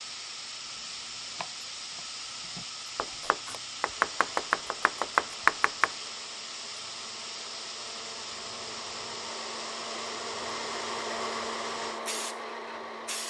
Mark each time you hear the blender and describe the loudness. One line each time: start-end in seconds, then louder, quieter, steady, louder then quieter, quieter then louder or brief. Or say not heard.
3.9-13.2 louder.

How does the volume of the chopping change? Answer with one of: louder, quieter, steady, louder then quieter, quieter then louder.
louder.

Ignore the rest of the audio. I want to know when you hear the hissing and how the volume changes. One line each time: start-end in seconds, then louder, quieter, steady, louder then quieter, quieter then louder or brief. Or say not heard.
0.0-13.2 steady.